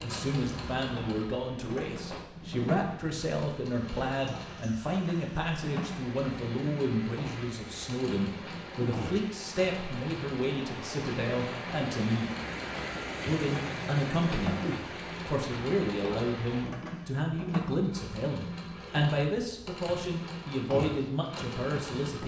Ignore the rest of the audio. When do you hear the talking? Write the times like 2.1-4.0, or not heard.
0.0-12.3, 13.2-14.6, 15.2-22.2.